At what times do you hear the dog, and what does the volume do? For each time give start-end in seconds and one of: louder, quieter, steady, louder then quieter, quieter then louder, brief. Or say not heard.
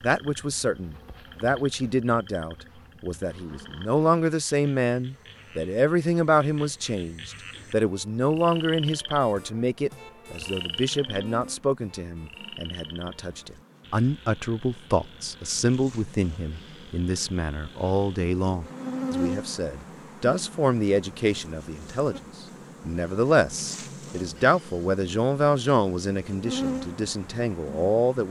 not heard.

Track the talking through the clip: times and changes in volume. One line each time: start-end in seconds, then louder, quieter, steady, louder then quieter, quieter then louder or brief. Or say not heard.
0.0-28.2 steady.